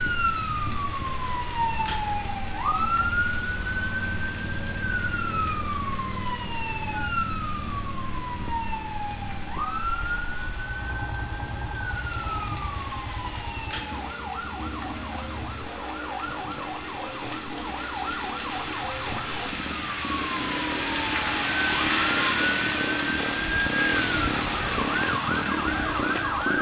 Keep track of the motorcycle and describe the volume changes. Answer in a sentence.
The volume of the motorcycle goes up.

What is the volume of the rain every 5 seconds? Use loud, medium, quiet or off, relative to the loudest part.
quiet, quiet, quiet, medium, loud, medium.